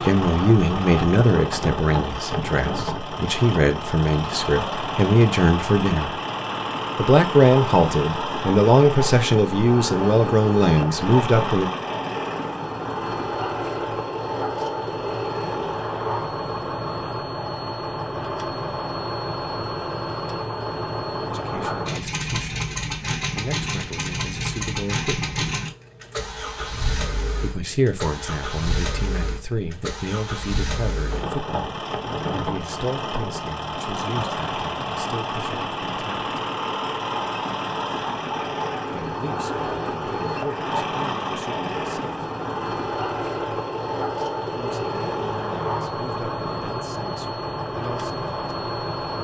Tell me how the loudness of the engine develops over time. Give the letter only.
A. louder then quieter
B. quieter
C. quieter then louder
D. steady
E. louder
D.